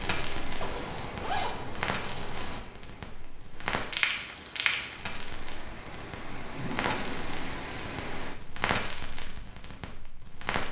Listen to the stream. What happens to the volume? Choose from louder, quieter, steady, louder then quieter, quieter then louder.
quieter then louder.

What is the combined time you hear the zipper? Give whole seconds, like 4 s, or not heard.
3 s.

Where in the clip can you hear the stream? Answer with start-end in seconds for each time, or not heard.
0.0-8.4.